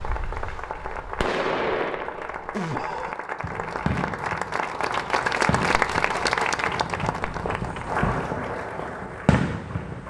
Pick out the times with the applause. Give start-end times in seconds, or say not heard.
0.0-10.0.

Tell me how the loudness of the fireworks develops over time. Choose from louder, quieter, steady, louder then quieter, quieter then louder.
quieter then louder.